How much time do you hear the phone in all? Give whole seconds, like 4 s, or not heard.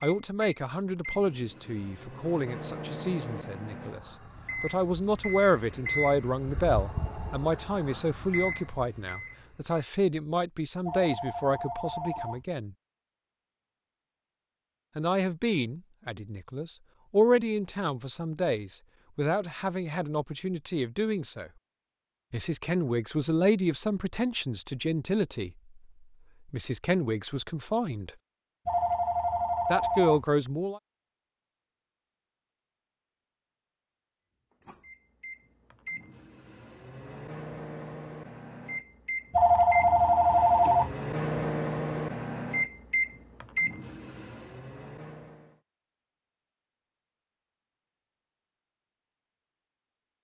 5 s.